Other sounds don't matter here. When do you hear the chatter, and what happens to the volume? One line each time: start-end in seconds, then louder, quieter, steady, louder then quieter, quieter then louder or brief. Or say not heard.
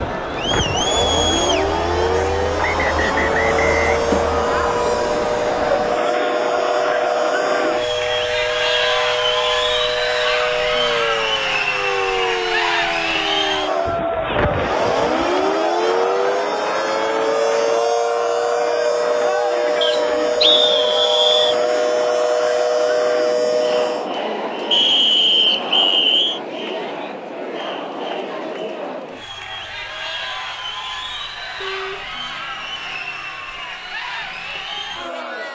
0.0-35.5 quieter.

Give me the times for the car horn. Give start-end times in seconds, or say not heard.
6.5-7.0, 31.6-32.1.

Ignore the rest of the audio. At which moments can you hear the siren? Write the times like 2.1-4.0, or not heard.
0.0-24.1.